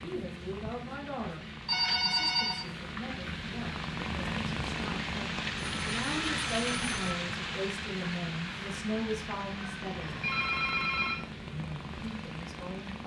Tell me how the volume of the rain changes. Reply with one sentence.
The loudness of the rain goes up, then down.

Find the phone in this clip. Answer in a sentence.
The phone can be heard from 1.6 to 2.6 s, from 5.5 to 7.2 s and from 10.0 to 11.2 s.